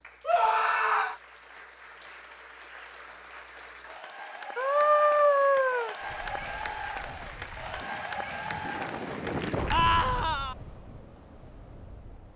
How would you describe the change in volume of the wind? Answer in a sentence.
The volume of the wind goes up, then down.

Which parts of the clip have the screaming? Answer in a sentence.
You can hear the screaming from 0.2 to 1.1 s, from 4.5 to 6.0 s and from 9.7 to 10.6 s.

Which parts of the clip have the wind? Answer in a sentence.
You can hear the wind from 6.0 to 12.3 s.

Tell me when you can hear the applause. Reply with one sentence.
The applause can be heard from 0.0 to 9.8 s.